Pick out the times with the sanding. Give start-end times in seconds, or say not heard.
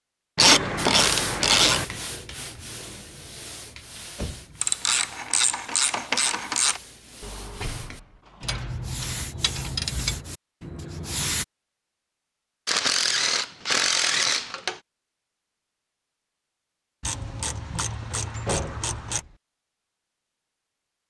0.8-11.4.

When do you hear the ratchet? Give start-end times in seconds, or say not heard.
0.3-1.9, 4.6-6.8, 8.4-10.2, 12.7-14.8, 17.0-19.2.